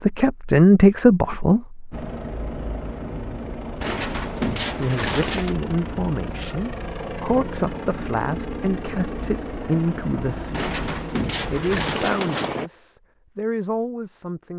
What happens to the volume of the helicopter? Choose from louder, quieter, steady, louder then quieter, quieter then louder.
steady.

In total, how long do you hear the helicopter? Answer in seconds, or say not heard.
11 s.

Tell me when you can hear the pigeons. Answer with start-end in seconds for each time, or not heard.
3.8-5.5, 10.5-12.6.